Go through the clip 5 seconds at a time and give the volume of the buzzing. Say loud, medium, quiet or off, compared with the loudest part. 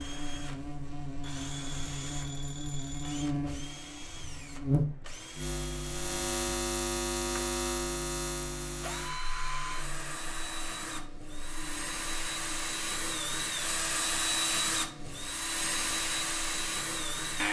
loud, loud, quiet, quiet.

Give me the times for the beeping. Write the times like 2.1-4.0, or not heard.
1.2-3.2.